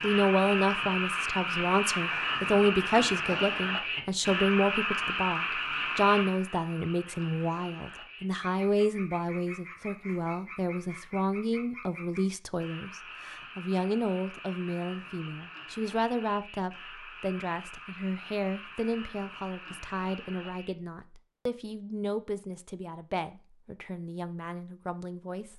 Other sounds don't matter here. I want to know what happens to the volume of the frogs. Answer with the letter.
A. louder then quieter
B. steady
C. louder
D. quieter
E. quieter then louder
D.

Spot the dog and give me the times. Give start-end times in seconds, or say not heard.
not heard.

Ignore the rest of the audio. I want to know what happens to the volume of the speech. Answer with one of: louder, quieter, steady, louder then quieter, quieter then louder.
quieter.